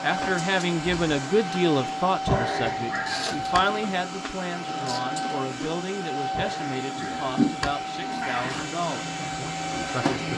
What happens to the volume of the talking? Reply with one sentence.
The volume of the talking goes down.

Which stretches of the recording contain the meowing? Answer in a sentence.
The meowing can be heard from 2.2 to 3.6 s and from 6.3 to 8.7 s.